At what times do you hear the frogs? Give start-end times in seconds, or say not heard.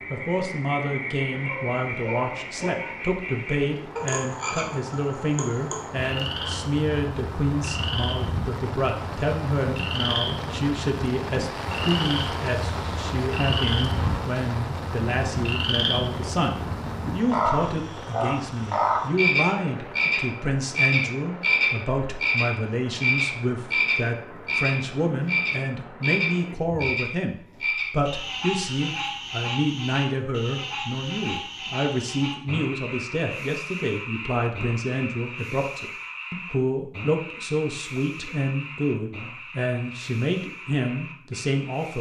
0.0-41.9.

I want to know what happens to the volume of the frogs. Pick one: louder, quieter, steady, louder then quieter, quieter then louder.
louder then quieter.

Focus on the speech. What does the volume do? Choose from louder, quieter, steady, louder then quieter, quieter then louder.
steady.